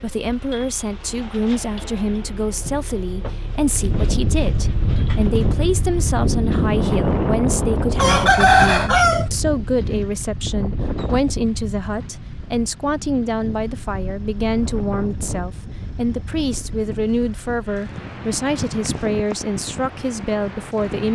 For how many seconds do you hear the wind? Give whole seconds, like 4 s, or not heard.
17 s.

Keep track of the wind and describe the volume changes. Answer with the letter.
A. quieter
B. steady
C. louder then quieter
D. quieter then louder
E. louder
A.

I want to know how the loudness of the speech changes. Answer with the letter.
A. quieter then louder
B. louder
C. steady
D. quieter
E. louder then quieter
C.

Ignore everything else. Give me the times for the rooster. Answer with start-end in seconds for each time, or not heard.
8.0-9.2.